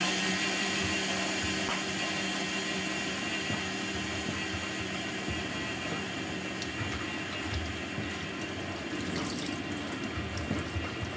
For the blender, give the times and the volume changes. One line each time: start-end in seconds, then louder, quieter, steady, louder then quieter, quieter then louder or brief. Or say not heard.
0.0-11.1 quieter.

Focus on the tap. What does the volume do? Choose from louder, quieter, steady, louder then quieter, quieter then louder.
louder.